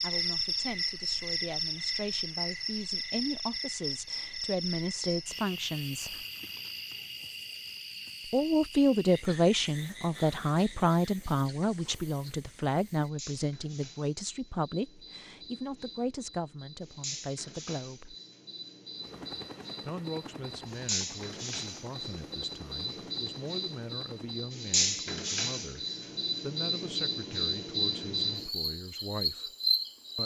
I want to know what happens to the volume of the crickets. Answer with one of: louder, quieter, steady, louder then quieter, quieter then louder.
quieter then louder.